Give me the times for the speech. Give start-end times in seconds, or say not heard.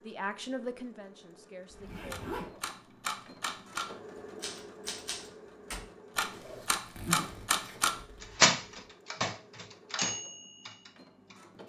0.0-2.2.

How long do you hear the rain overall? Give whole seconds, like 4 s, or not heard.
not heard.